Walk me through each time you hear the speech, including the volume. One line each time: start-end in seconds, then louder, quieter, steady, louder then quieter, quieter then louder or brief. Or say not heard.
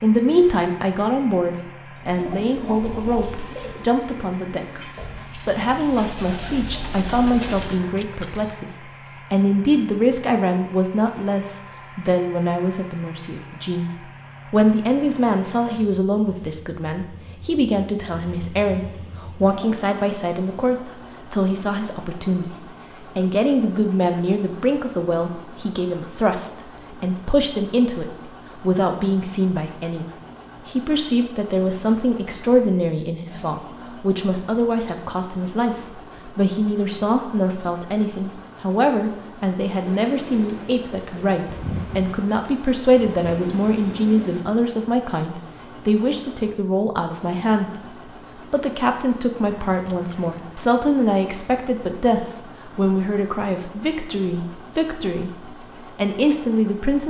0.0-57.0 steady.